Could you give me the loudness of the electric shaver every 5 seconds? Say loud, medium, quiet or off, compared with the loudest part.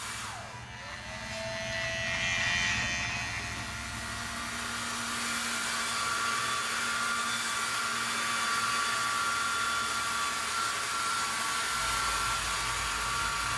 loud, quiet, quiet.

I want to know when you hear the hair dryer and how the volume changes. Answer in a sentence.
You can hear the hair dryer from 0.0 to 13.5 s, getting louder.